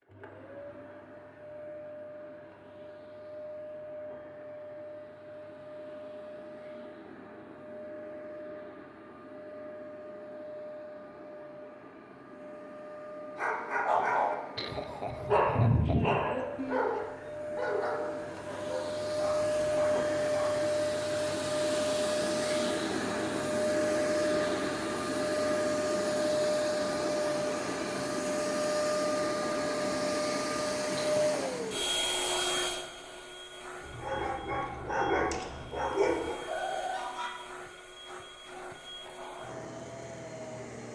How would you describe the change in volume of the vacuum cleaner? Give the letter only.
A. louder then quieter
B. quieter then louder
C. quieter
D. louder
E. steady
A.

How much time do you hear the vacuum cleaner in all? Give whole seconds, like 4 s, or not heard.
41 s.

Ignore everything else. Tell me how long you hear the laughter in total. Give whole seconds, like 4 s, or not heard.
2 s.